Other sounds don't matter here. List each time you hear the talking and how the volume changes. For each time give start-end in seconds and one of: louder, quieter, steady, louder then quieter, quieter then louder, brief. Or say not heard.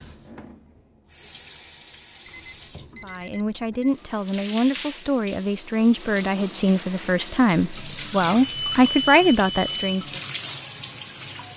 3.0-10.1 louder.